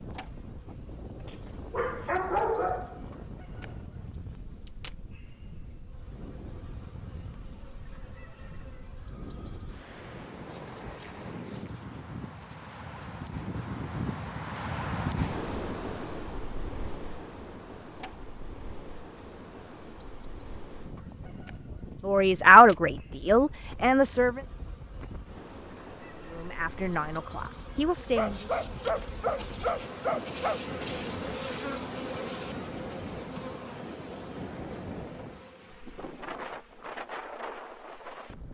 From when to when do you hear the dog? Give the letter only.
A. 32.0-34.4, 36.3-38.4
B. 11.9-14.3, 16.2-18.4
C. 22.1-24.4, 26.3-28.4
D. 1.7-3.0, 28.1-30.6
D.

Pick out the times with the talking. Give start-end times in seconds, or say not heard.
22.1-24.4, 26.3-28.4.